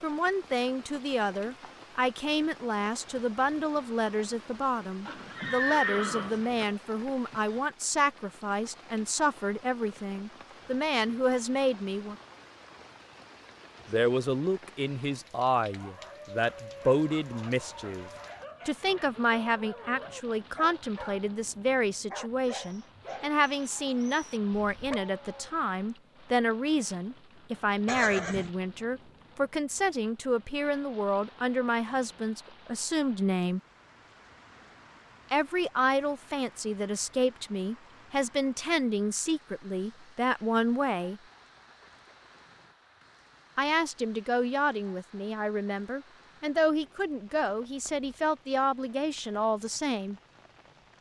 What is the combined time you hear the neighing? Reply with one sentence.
The neighing can be heard for 2 seconds in total.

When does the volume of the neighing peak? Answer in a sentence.
The loudest moment of the neighing is at 6 seconds.